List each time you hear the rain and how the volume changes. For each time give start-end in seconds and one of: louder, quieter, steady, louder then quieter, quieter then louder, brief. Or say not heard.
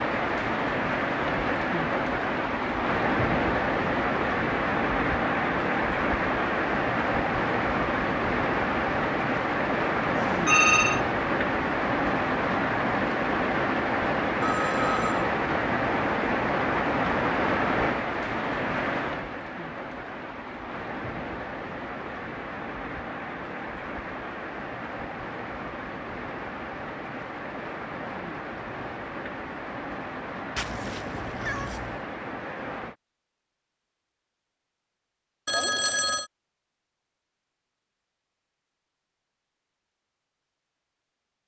0.0-33.0 quieter.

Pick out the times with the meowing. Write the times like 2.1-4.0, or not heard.
30.6-32.0.